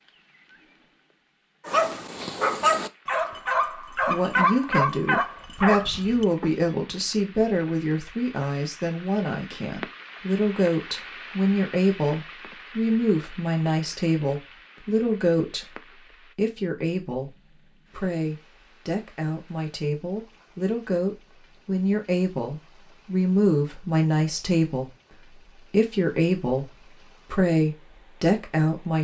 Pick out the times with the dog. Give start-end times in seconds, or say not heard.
1.6-6.7.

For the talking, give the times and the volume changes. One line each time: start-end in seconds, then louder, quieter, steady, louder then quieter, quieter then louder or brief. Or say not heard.
3.9-28.9 steady.